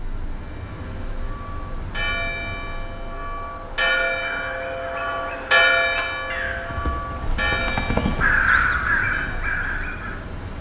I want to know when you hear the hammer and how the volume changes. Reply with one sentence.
The hammer can't be heard in this clip.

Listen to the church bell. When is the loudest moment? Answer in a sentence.
The loudest moment of the church bell is at 6 seconds.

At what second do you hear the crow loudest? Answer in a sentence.
The volume of the crow peaks at 8 seconds.